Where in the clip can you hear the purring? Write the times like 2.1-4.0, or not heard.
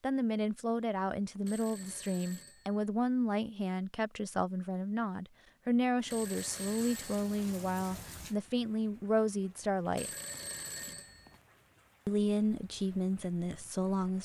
not heard.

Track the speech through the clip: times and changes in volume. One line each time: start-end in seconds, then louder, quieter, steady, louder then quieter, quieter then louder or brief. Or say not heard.
0.0-10.1 steady
12.1-14.2 brief.